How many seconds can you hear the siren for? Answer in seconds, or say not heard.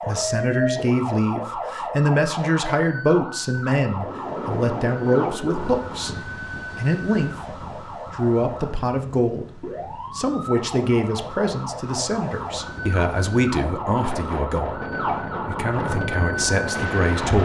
17 s.